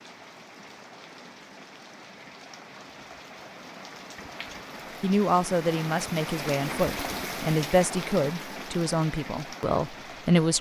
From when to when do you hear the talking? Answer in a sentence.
The talking can be heard from 5.0 to 10.5 s.